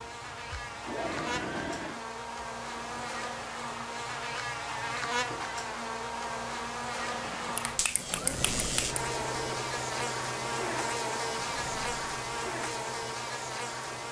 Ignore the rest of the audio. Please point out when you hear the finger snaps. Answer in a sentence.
The finger snaps can be heard from 7.5 to 9.0 s.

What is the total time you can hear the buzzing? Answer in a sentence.
The buzzing can be heard for 14 seconds in total.